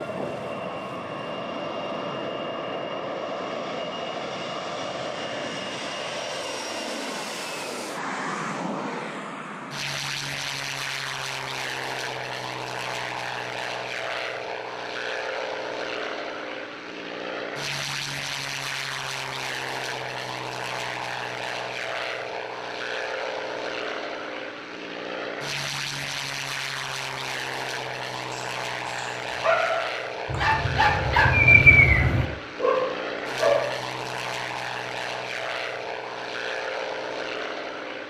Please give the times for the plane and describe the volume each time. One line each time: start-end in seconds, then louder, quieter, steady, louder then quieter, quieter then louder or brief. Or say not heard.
0.0-38.0 steady.